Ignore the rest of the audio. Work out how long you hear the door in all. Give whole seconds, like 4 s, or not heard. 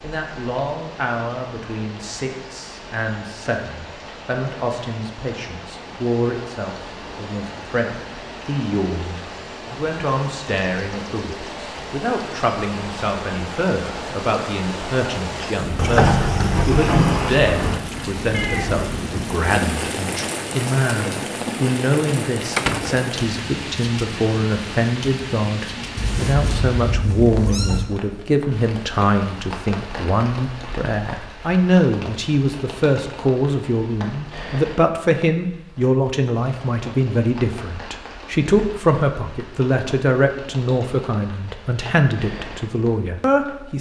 3 s.